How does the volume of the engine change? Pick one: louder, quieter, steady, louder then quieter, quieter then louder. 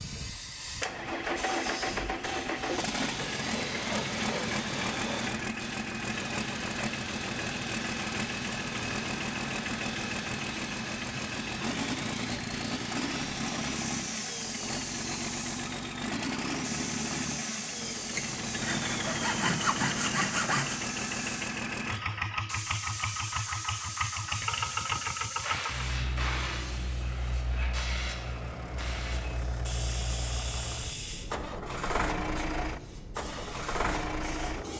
steady.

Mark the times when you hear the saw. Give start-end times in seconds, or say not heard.
3.1-5.3, 18.1-20.8.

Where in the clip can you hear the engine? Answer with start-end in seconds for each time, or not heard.
0.0-34.7.